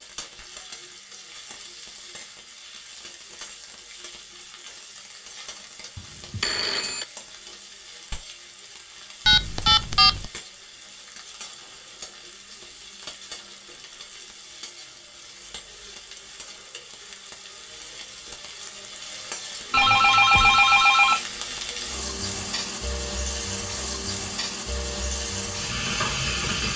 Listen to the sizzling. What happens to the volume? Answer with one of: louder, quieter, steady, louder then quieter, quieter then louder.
louder.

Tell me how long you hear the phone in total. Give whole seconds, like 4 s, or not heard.
4 s.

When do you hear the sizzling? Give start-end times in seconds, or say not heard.
0.0-26.7.